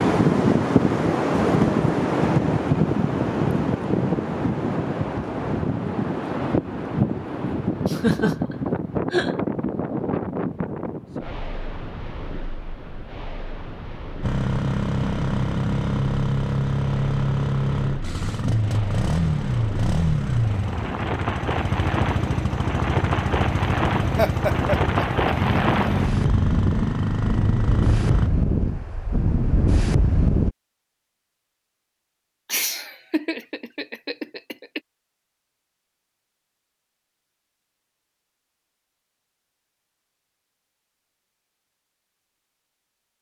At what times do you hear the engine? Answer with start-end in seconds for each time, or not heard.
14.2-28.3.